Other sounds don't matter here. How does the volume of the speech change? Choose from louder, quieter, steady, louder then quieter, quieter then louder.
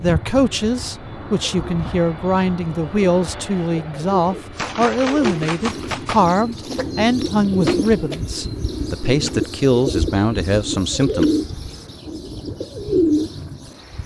steady.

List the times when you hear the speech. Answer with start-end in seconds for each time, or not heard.
0.0-11.3.